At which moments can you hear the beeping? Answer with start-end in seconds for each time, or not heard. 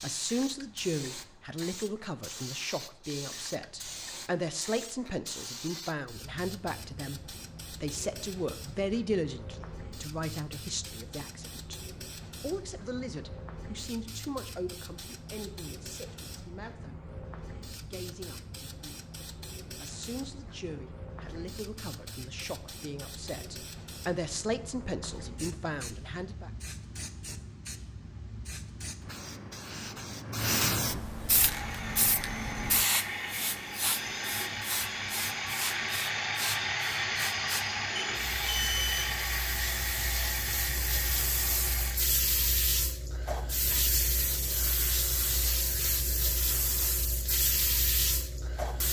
38.0-39.1.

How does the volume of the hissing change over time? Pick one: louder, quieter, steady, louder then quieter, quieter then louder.
louder.